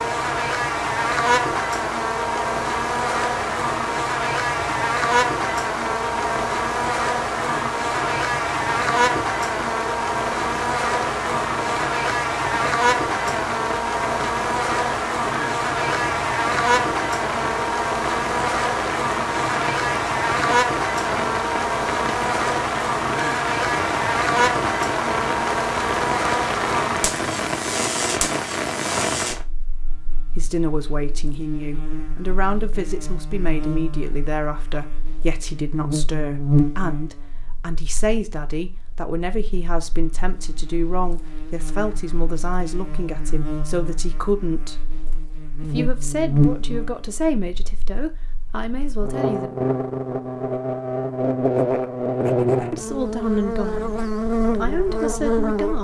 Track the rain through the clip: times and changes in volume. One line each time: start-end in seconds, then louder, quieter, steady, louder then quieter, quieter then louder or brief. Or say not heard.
0.0-29.4 louder.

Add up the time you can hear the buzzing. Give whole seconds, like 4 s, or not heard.
56 s.